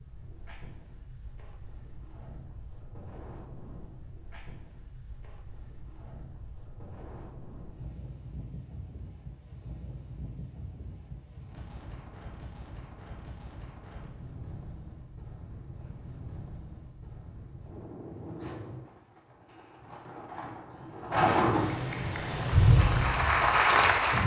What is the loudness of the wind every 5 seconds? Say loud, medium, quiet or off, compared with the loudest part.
quiet, quiet, quiet, quiet, loud.